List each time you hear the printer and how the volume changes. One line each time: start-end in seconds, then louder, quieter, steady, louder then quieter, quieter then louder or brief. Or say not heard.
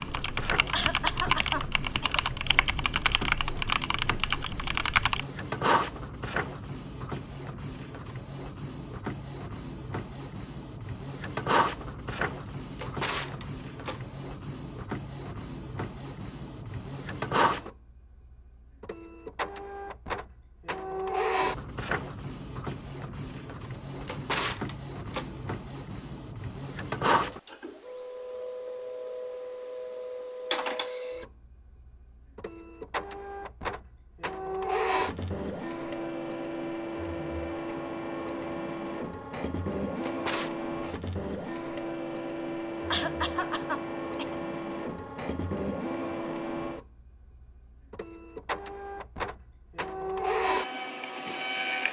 0.0-51.8 steady.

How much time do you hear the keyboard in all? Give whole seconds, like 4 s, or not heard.
5 s.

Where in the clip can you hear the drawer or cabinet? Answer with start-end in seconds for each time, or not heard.
12.4-14.2, 24.0-25.6, 40.0-40.5.